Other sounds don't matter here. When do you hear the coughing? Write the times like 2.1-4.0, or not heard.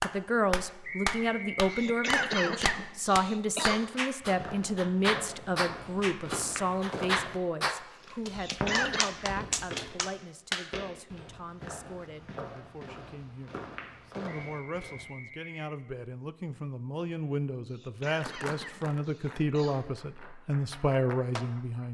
1.7-3.9, 8.3-9.1, 17.6-19.9.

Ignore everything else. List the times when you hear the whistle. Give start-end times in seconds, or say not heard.
0.8-2.1, 14.2-15.7.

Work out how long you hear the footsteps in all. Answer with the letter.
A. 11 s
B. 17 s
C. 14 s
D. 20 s
A.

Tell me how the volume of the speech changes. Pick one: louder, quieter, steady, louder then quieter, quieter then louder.
quieter then louder.